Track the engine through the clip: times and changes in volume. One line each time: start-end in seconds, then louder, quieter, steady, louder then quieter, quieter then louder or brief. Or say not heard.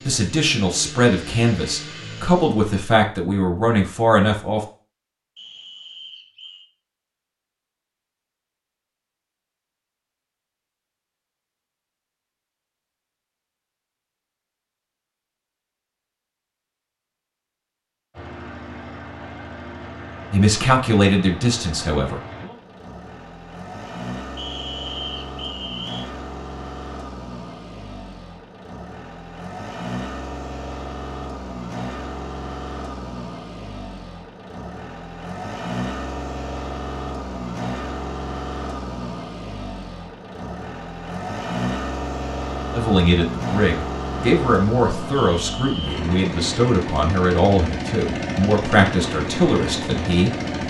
0.0-2.8 brief
18.1-50.6 louder.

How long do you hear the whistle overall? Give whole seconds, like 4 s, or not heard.
4 s.